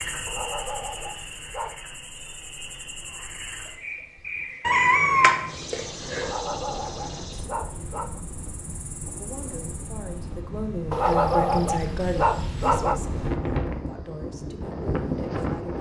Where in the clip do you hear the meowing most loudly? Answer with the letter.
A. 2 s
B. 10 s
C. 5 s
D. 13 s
C.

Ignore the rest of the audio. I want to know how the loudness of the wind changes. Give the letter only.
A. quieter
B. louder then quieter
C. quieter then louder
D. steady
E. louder
E.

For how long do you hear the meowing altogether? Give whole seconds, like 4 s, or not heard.
2 s.